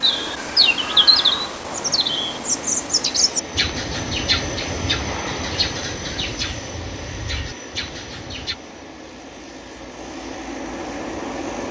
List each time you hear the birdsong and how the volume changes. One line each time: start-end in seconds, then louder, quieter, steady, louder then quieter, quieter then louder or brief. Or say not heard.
0.0-8.6 quieter.